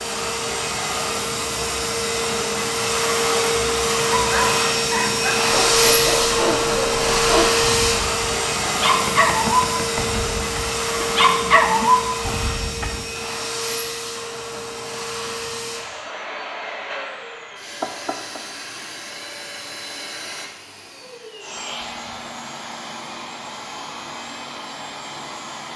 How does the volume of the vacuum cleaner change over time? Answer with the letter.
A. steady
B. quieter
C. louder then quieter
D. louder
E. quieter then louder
B.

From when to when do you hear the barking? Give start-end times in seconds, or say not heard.
4.1-13.1.